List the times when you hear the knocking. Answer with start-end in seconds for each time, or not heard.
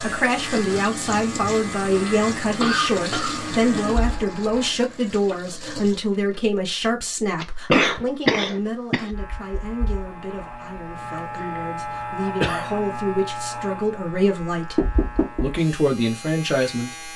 14.8-15.4.